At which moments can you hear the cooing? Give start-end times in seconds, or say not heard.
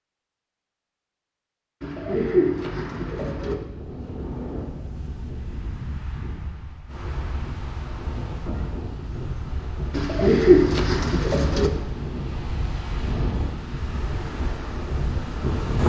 1.8-3.5, 9.9-11.7.